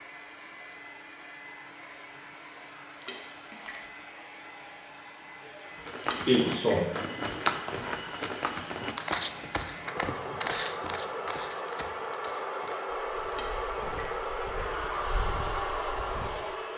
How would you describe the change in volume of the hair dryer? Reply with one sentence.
The volume of the hair dryer goes up.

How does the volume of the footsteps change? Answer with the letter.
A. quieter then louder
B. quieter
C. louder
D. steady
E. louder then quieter
B.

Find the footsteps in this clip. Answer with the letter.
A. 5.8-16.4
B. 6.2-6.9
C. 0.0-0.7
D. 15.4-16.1
A.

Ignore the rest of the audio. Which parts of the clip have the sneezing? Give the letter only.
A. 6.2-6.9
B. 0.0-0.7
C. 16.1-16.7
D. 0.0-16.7
A.